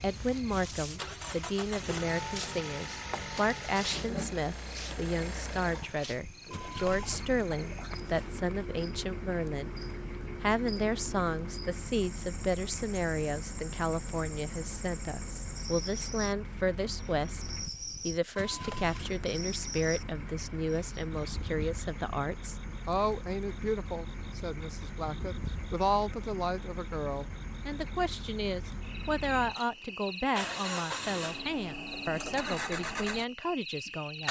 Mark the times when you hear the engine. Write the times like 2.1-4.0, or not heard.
0.0-34.2.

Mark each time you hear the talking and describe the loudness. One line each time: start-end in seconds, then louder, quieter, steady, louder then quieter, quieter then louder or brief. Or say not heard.
0.0-9.8 steady
10.4-34.2 steady.